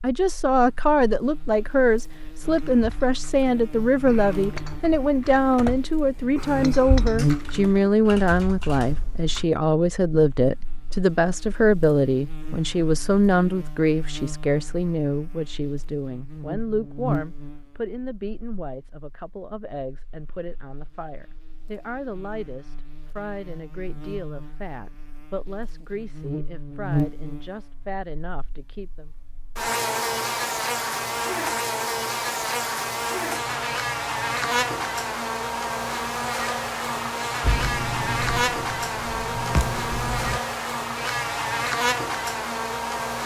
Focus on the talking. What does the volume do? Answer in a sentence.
The volume of the talking goes down.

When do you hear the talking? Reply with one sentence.
The talking can be heard from 0.0 to 29.1 s.